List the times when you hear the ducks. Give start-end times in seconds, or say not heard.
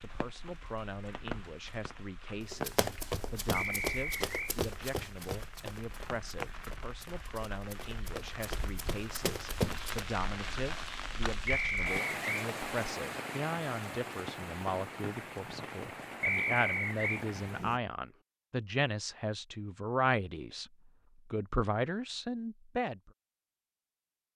not heard.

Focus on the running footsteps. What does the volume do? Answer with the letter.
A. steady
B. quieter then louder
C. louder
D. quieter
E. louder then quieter
B.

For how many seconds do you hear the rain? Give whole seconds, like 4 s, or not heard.
18 s.